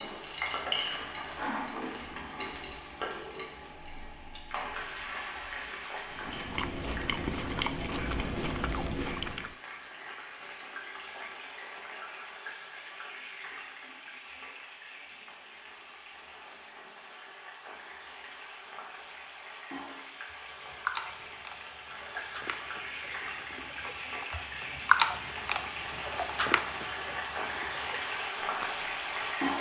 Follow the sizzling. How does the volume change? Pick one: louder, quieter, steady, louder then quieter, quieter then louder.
quieter then louder.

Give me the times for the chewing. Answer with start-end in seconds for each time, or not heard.
6.1-9.5, 20.6-29.4.